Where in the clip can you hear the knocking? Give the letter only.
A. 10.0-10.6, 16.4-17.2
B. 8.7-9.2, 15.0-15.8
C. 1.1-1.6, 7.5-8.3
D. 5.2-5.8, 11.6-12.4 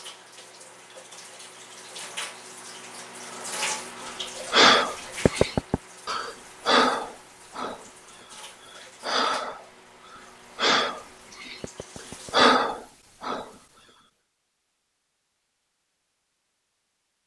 D.